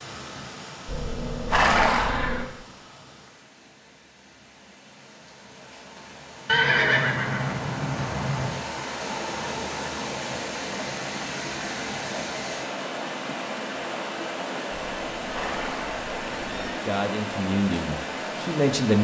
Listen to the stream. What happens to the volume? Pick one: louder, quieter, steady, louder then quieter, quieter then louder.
louder.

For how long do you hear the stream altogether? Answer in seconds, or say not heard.
19 s.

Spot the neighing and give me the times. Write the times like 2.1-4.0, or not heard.
0.8-2.5, 6.5-8.5, 14.7-16.8.